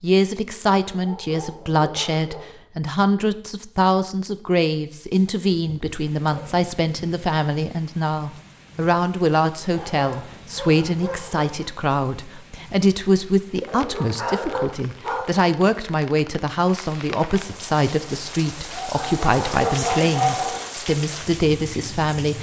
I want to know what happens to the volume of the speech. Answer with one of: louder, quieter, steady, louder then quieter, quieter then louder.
steady.